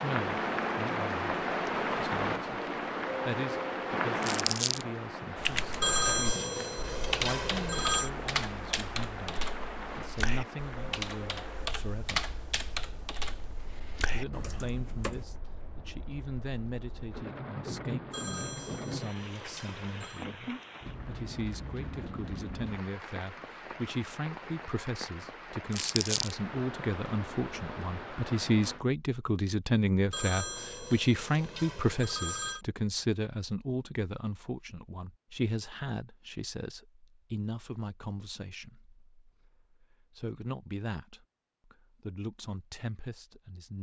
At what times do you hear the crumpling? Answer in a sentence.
The crumpling can be heard from 4.2 to 4.8 s and from 25.7 to 26.4 s.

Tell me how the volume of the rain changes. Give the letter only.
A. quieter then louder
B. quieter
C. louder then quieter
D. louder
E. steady
A.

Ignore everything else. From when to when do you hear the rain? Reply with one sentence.
The rain can be heard from 0.0 to 28.9 s.